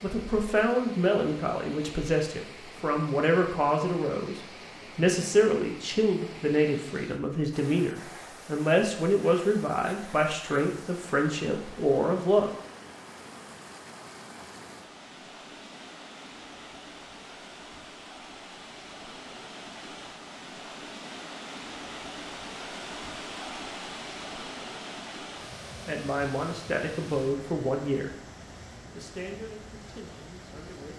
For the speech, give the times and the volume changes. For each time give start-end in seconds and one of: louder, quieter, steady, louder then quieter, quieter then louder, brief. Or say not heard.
0.0-12.5 steady
25.9-28.1 brief
28.9-30.9 brief.